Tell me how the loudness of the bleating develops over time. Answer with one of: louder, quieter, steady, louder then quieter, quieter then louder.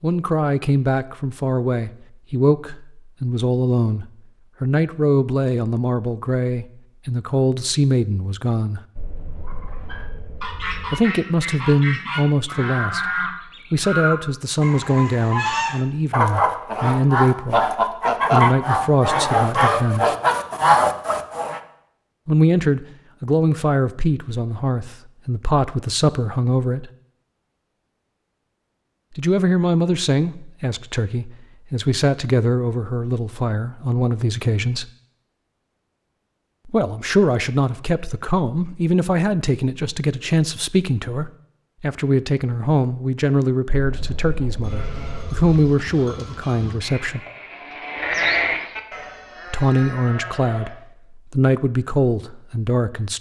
louder then quieter.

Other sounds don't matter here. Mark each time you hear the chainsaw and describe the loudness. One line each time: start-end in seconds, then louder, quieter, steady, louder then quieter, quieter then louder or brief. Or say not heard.
not heard.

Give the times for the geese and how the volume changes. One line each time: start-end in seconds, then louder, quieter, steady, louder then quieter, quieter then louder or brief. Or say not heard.
9.4-21.6 louder.